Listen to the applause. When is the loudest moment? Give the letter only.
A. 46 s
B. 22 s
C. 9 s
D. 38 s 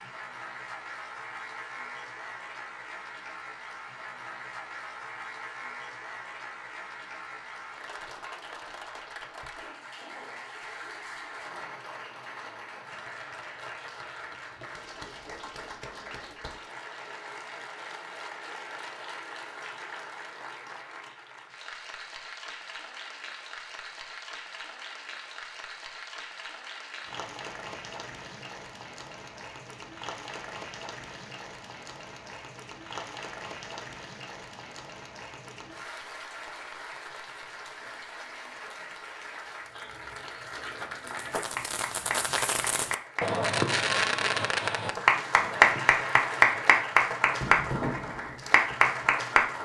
A.